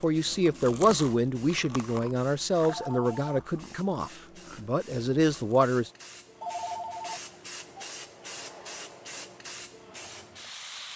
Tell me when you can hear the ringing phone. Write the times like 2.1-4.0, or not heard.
2.6-3.5, 6.4-7.8.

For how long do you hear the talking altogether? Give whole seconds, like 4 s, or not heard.
6 s.